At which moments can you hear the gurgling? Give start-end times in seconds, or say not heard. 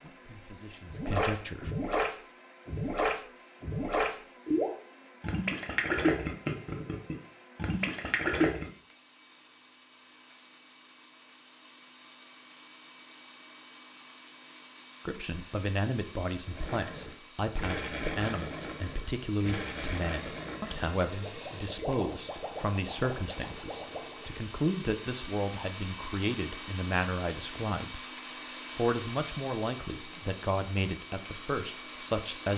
0.8-8.7, 16.4-24.4.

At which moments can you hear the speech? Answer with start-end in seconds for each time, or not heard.
0.0-1.7, 15.1-28.1, 28.8-32.5.